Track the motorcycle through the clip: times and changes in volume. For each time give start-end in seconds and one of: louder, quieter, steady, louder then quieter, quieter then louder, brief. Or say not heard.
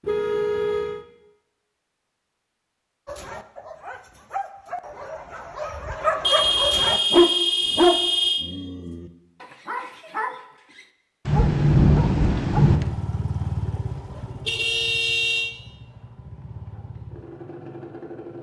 12.6-18.3 quieter then louder.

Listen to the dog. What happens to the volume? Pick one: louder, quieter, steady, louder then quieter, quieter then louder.
louder then quieter.